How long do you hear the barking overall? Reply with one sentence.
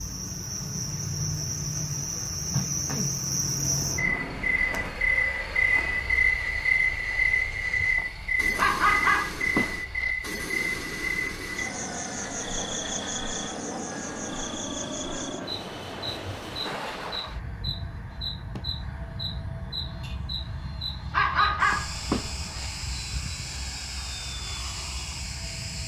The barking can be heard for 3 seconds in total.